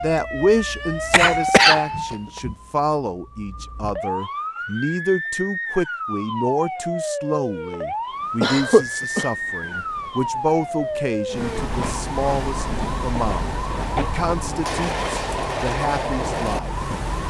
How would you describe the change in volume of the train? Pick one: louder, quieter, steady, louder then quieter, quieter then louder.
louder.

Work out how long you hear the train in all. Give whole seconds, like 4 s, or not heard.
9 s.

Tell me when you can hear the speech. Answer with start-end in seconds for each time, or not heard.
0.0-16.8.